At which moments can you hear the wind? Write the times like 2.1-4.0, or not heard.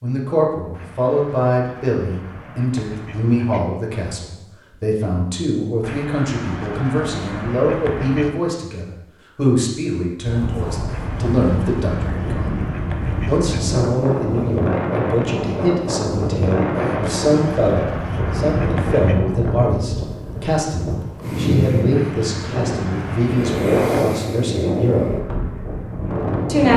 10.2-26.7.